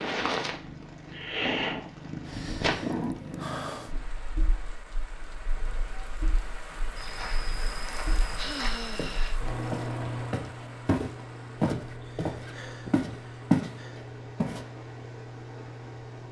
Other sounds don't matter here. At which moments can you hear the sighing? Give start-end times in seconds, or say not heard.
2.2-4.0, 8.3-9.4, 12.0-14.0.